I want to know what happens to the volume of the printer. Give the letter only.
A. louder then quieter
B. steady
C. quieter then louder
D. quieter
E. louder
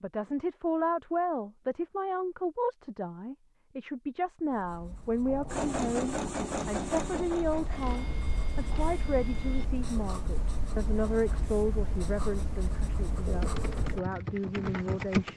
D.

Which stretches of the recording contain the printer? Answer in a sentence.
The printer can be heard from 5.5 to 9.7 s.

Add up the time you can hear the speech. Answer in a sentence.
You can hear the speech for 15 seconds altogether.